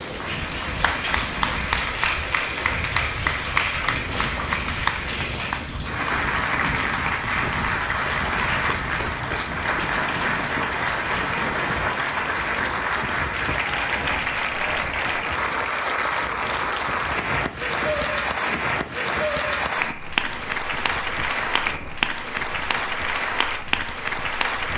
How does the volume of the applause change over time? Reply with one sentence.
The volume of the applause stays about the same.